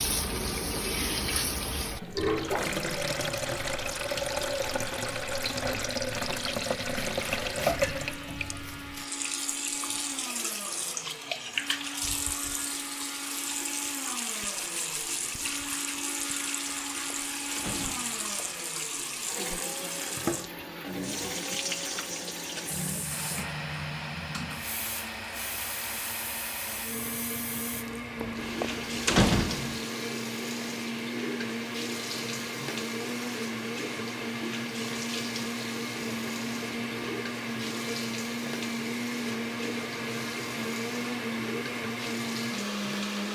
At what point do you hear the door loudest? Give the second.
29 s.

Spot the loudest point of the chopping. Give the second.
8 s.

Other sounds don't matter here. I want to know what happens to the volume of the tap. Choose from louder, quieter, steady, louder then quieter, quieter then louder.
quieter.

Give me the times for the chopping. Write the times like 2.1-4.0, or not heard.
7.0-9.1.